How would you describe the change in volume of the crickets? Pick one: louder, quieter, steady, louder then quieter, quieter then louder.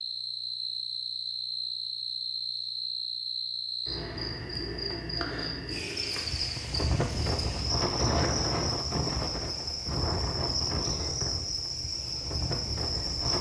steady.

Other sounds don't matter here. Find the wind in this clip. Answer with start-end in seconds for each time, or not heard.
6.1-13.3.